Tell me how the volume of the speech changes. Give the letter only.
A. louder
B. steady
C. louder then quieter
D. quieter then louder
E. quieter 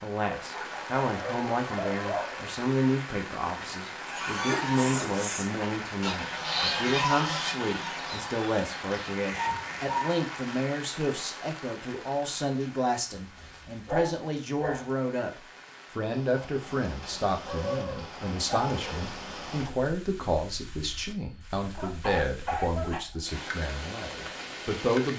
B.